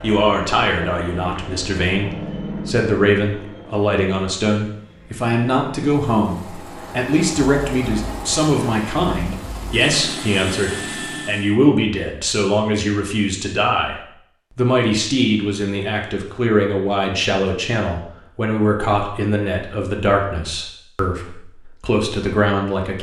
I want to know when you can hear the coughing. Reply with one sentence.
You can't hear the coughing here.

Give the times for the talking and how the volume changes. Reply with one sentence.
You can hear the talking from 0.0 to 22.9 s, at a steady volume.